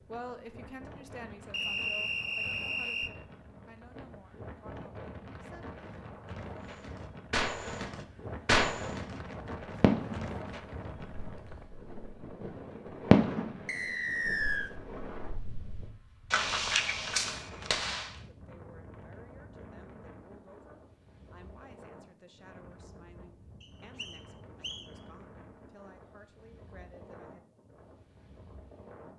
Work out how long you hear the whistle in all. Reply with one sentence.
The whistle can be heard for 4 seconds in total.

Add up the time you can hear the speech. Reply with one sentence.
You can hear the speech for 15 seconds altogether.